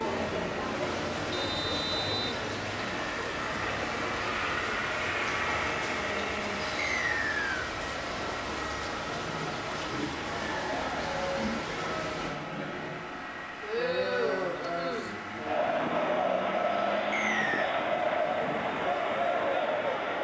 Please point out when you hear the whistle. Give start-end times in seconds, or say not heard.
1.3-2.4, 6.8-7.7, 17.1-17.8.